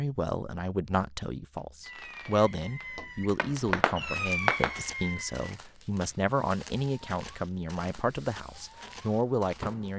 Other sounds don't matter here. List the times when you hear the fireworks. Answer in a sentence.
You can hear the fireworks from 1.8 to 9.9 s.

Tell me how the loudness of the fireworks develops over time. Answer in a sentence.
The loudness of the fireworks goes up, then down.